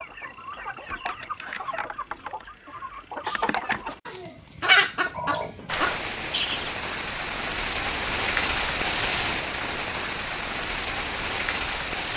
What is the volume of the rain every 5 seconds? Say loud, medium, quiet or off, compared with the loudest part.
off, loud, loud.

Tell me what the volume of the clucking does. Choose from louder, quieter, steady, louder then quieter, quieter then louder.
louder then quieter.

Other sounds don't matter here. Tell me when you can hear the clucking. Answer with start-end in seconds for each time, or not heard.
0.0-6.7.